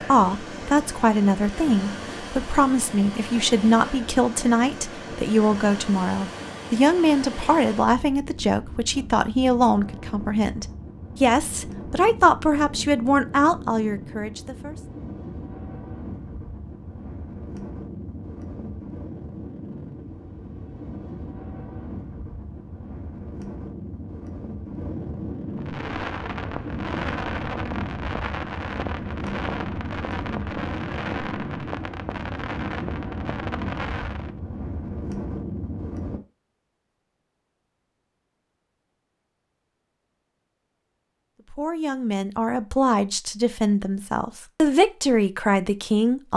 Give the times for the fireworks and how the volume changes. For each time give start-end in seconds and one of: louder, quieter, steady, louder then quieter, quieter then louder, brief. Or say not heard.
25.6-34.3 steady.